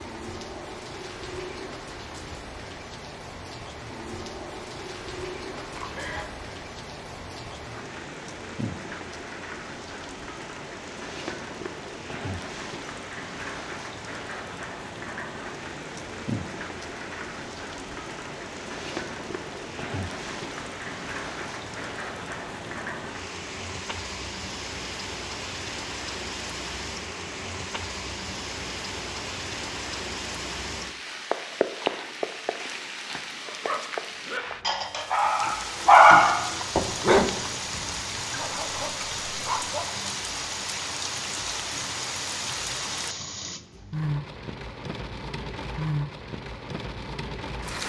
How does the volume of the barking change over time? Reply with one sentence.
The loudness of the barking goes up, then down.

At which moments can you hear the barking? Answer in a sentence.
The barking can be heard from 33.5 to 39.9 s.